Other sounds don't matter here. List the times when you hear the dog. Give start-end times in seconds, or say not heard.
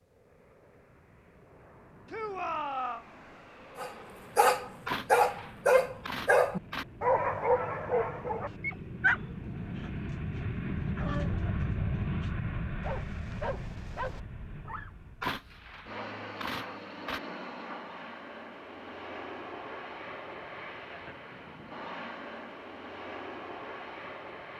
3.8-14.9.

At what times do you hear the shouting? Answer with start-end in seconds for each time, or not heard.
2.0-3.0.